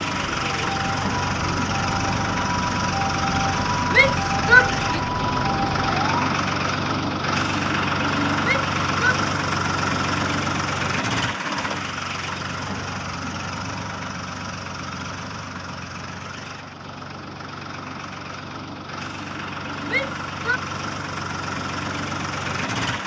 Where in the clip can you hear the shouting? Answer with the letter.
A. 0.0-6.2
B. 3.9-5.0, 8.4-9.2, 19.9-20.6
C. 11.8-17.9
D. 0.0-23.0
B.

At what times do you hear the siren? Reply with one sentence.
The siren can be heard from 0.0 to 6.2 s.